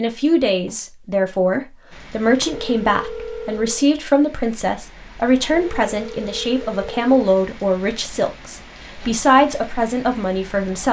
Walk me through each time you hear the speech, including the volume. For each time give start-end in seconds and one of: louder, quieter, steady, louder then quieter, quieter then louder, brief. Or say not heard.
0.0-10.8 steady.